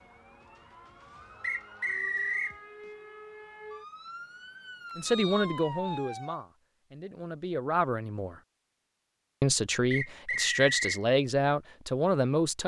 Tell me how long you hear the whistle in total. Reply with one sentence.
You can hear the whistle for 3 seconds altogether.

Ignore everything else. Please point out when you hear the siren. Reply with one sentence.
You can hear the siren from 0.0 to 6.5 s.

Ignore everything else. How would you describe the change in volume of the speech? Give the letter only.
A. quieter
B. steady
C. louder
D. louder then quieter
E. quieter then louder
E.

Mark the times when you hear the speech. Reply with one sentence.
You can hear the speech from 5.0 to 8.3 s and from 9.4 to 12.6 s.